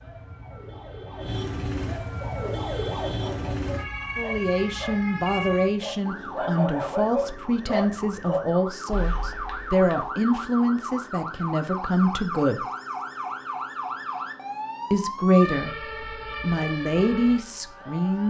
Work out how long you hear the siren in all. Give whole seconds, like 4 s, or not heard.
18 s.